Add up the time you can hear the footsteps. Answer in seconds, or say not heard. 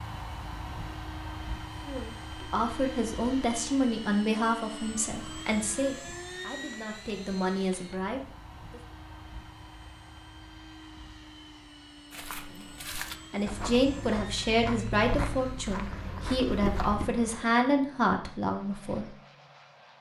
5 s.